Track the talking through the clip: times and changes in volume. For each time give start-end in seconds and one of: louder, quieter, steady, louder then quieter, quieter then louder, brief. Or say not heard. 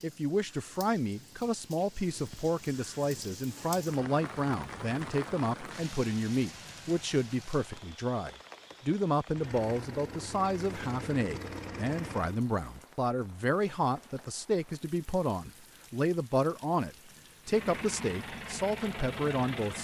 0.0-19.7 steady.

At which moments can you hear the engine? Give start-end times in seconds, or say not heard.
9.2-12.4, 17.4-19.7.